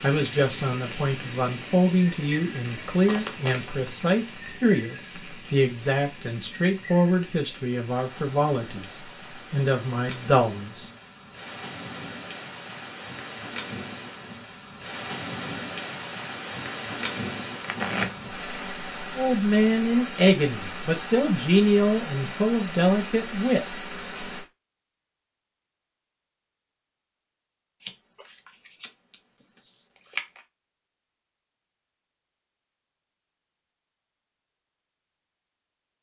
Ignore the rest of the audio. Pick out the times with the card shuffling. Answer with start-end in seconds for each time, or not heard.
3.0-3.9, 17.6-18.4, 27.8-30.4.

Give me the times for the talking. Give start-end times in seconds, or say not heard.
0.0-10.9, 19.1-23.9.